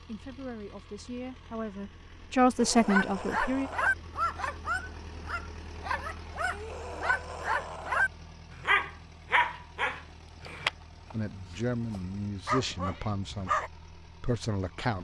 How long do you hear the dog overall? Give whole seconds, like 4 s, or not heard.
11 s.